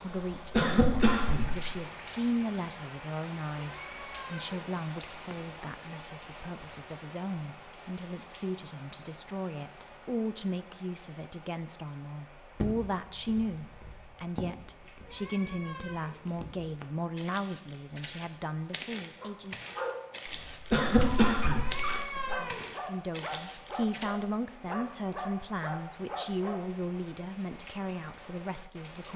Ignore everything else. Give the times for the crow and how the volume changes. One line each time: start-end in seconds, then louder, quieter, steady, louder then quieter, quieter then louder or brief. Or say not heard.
not heard.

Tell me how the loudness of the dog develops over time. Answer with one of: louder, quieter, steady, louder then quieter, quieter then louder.
steady.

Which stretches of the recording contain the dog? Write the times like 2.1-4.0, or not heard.
19.1-26.6.